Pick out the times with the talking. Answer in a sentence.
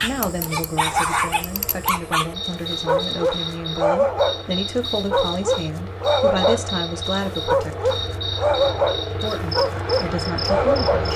The talking can be heard from 0.0 to 7.9 s and from 9.1 to 11.1 s.